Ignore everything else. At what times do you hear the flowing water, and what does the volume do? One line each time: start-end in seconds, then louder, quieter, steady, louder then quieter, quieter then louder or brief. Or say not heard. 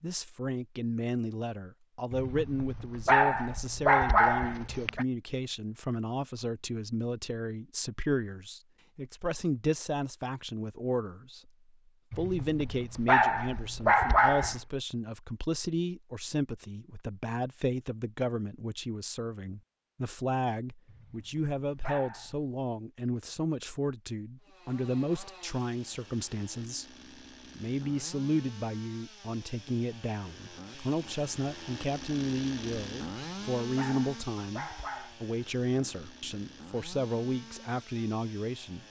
not heard.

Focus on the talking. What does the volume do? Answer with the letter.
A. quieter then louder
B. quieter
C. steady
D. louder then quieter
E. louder
C.